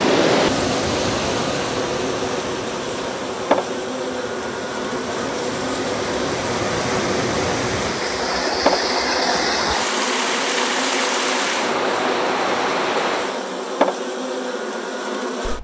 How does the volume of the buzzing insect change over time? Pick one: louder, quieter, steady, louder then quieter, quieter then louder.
steady.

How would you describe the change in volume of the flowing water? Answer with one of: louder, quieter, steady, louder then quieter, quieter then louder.
quieter then louder.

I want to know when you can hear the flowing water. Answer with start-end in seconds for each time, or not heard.
0.0-13.4.